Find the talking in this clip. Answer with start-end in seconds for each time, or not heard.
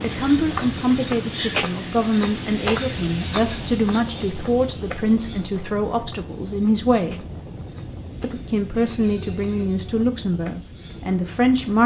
0.0-7.2, 8.2-11.8.